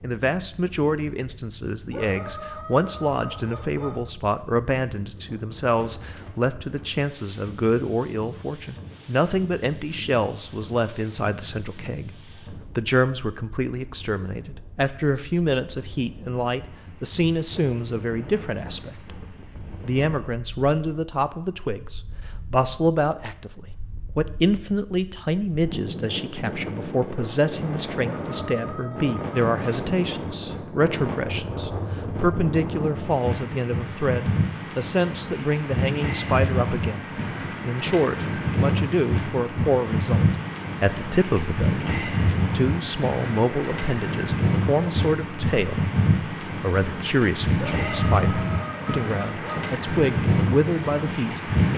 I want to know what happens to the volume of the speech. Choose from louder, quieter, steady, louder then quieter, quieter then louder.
steady.